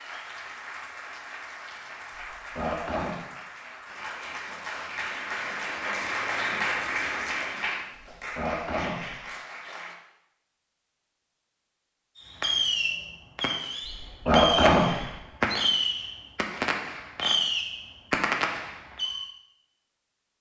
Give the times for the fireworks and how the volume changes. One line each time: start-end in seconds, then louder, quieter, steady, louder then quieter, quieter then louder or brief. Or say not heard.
12.2-19.3 steady.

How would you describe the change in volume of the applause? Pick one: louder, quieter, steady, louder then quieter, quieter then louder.
louder then quieter.